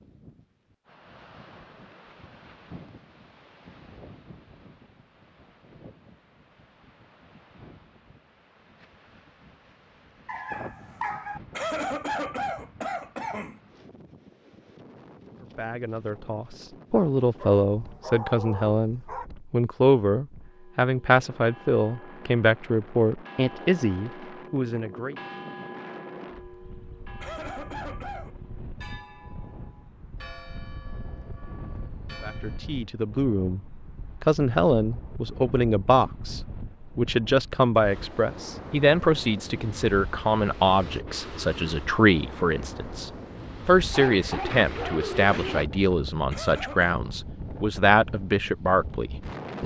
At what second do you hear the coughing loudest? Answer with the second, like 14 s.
12 s.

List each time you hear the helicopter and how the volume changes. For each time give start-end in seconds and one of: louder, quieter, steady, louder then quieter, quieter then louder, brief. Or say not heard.
not heard.